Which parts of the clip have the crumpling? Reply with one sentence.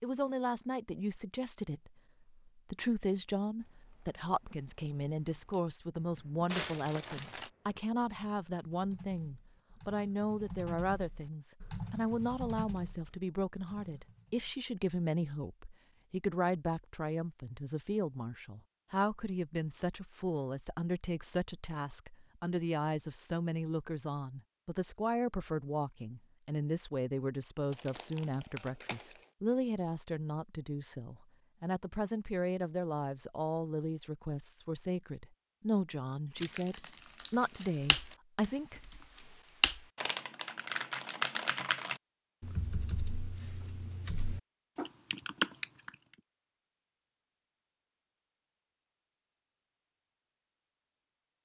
The crumpling can be heard from 6.5 to 7.5 s, from 27.7 to 29.2 s and from 36.4 to 38.1 s.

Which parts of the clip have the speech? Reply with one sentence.
The speech can be heard from 0.0 to 38.8 s.